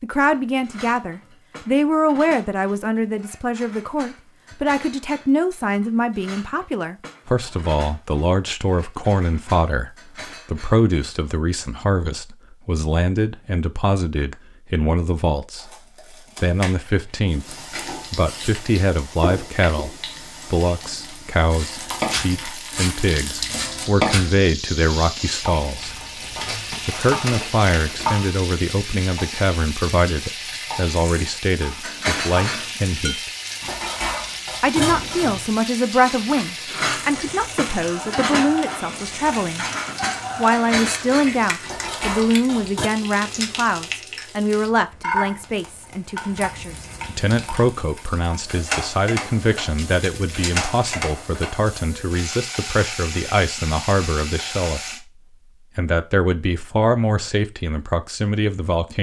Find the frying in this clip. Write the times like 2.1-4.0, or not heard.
17.4-55.0.